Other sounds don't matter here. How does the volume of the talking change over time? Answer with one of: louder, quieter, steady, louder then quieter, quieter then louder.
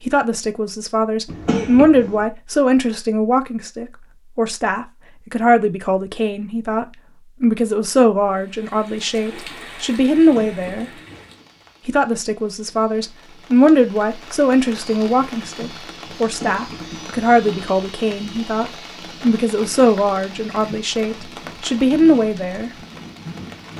steady.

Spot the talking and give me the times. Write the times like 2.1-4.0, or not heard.
0.0-10.9, 11.8-22.7.